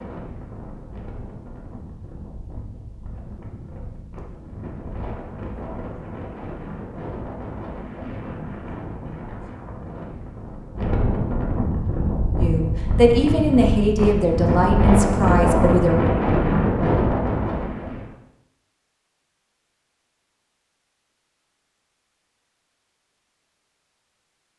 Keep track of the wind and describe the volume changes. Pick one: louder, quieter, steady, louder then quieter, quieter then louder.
louder.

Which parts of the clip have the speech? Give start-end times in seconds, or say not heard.
12.3-15.9.